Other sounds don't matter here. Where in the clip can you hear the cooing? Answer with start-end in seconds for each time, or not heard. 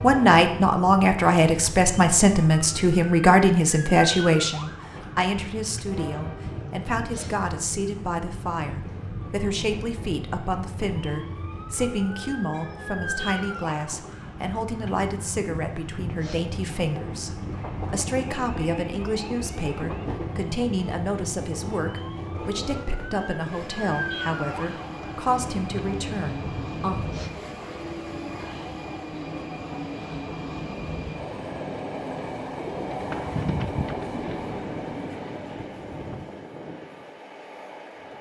32.7-34.4.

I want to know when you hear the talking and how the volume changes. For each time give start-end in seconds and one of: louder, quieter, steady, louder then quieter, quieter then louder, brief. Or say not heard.
0.0-27.0 quieter.